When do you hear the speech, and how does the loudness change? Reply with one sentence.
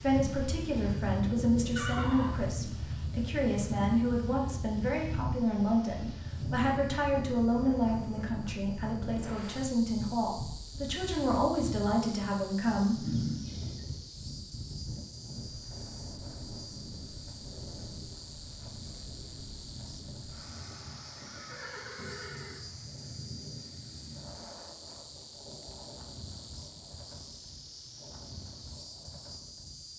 You can hear the speech from 0.0 to 13.0 s, at a steady volume.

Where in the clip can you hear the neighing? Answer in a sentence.
You can hear the neighing from 1.8 to 2.5 s, from 13.0 to 13.8 s and from 20.4 to 22.6 s.